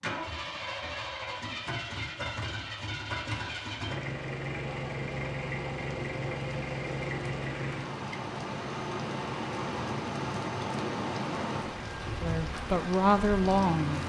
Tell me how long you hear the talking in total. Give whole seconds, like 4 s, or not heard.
2 s.